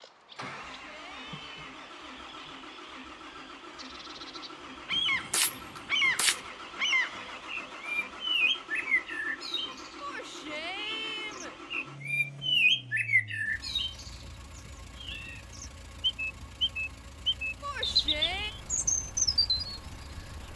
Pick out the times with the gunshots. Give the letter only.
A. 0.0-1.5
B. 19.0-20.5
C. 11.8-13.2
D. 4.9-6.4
D.